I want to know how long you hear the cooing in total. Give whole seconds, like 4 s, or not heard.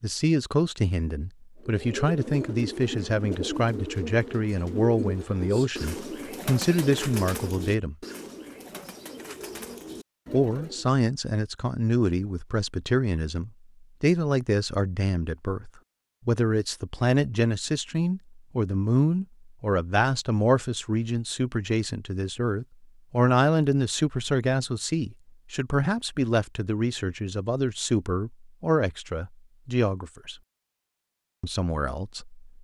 9 s.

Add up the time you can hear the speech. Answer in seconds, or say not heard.
29 s.